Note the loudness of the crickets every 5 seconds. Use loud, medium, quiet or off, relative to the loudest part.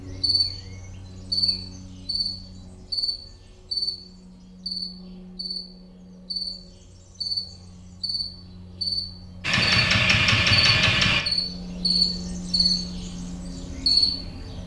medium, medium, loud.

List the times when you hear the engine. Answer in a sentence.
The engine can be heard from 9.4 to 11.2 s.